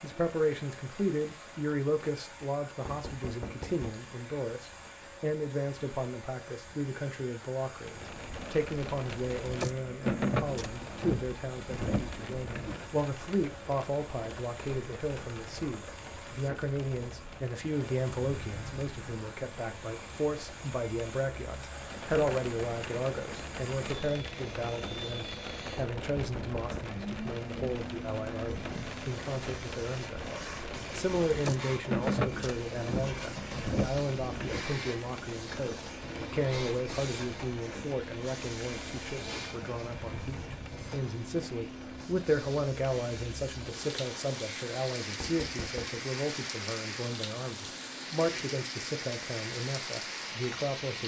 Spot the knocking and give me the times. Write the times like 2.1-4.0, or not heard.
2.9-4.0, 25.8-26.9, 45.2-46.0.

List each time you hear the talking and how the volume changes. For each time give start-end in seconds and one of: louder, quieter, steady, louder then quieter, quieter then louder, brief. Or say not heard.
0.0-51.0 steady.